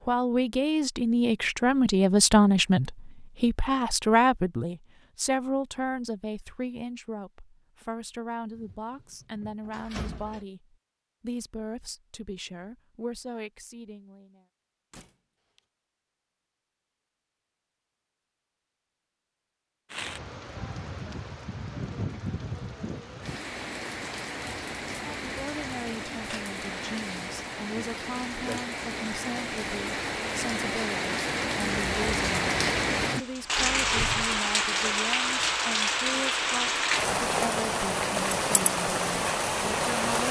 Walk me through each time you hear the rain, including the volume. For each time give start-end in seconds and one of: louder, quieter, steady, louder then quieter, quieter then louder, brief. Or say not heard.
19.9-40.2 louder.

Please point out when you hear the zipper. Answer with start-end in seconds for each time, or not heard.
not heard.